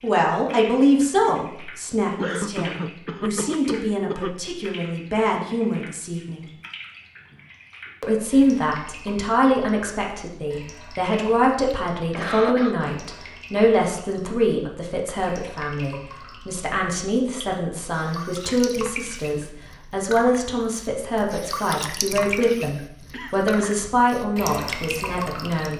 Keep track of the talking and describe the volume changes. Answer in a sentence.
The loudness of the talking stays about the same.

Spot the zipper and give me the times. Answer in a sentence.
The zipper can't be heard in this clip.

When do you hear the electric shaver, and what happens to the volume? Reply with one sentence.
The electric shaver can't be heard in this clip.